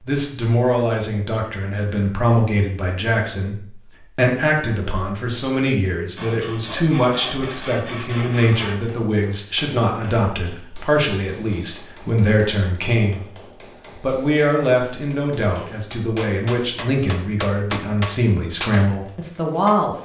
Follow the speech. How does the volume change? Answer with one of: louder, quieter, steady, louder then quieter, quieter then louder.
steady.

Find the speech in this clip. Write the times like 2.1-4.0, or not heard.
0.0-13.3, 13.9-20.0.